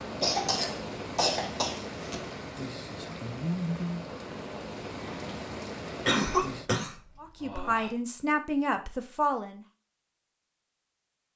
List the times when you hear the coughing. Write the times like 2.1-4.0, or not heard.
0.2-2.1, 6.0-7.9.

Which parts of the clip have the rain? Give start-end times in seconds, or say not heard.
0.0-6.7.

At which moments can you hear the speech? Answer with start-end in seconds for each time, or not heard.
7.2-9.6.